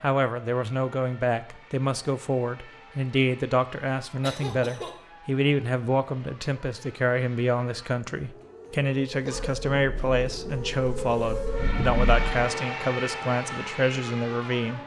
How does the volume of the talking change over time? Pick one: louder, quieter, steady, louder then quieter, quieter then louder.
steady.